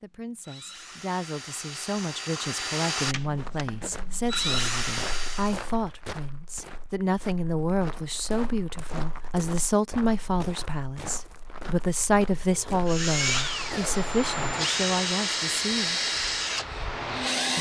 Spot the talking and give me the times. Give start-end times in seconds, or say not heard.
0.0-16.1.